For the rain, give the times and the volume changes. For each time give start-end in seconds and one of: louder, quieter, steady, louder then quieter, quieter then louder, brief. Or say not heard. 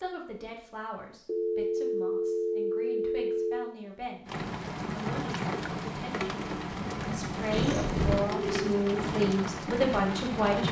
4.2-10.6 steady.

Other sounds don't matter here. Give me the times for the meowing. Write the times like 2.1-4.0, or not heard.
7.5-8.2.